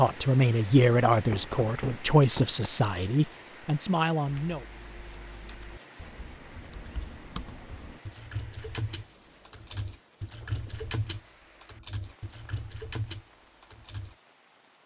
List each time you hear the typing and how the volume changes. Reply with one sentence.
The typing can be heard from 4.2 to 14.2 s, getting louder.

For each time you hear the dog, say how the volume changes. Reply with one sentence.
The dog can't be heard in this clip.